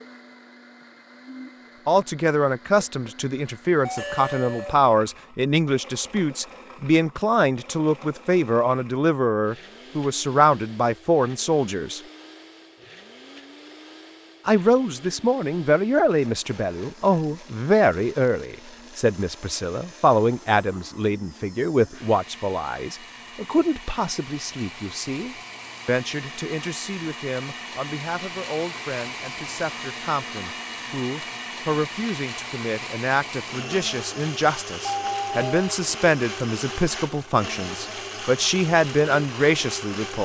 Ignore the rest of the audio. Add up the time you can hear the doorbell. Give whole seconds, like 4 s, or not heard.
2 s.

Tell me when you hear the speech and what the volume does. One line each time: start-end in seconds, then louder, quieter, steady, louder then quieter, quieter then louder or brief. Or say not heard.
1.9-12.0 steady
14.4-40.2 quieter then louder.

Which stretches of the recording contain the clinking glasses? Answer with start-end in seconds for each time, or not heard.
not heard.